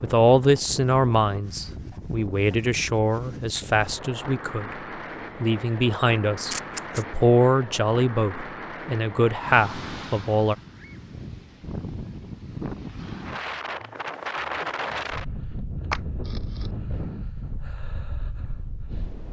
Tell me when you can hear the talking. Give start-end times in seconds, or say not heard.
0.0-4.8, 5.4-10.6.